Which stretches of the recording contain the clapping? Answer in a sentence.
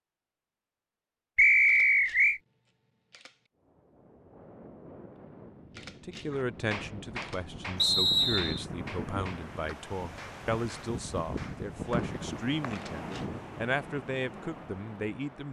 You can hear the clapping from 6.3 to 11.7 s.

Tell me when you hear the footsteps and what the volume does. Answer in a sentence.
You can't hear the footsteps here.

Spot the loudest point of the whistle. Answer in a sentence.
The loudest moment of the whistle is at 2 seconds.